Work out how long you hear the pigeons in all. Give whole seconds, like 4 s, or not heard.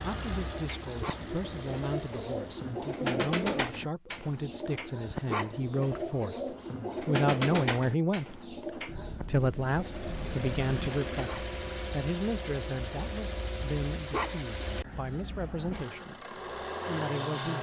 11 s.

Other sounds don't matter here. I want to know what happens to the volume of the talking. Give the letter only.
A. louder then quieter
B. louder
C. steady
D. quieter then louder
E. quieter
A.